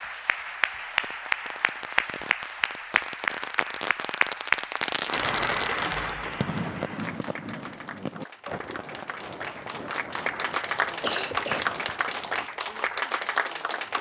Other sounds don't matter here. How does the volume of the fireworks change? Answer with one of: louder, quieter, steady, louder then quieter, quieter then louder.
louder then quieter.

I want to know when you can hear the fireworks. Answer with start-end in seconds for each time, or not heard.
1.0-12.5.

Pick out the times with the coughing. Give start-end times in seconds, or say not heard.
11.0-11.8.